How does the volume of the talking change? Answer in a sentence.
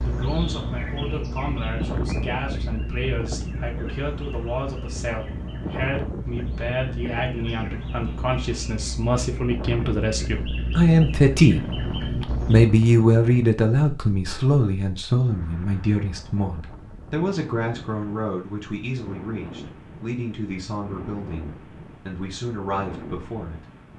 The loudness of the talking goes up, then down.